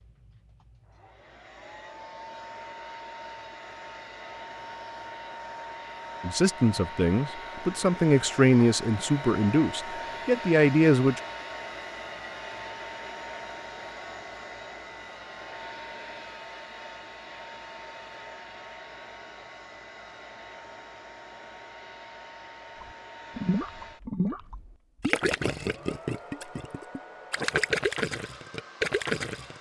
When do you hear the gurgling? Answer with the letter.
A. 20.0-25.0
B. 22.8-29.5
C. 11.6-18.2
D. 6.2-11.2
B.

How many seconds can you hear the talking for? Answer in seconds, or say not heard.
5 s.